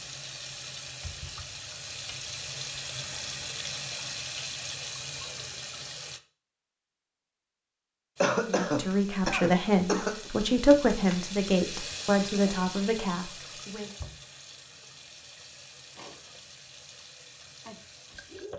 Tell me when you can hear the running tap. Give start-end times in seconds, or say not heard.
0.0-6.2, 8.2-18.5.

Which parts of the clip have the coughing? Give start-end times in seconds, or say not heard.
8.2-10.3.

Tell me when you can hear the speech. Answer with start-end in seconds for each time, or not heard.
8.4-13.9.